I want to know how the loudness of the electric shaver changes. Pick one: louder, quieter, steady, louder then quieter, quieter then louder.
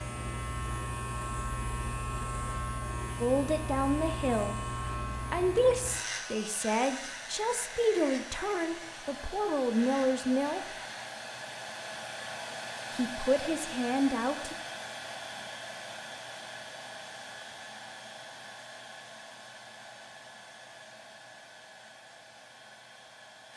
quieter.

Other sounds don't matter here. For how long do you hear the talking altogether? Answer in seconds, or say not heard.
8 s.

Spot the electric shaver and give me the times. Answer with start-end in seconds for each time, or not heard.
0.0-11.1.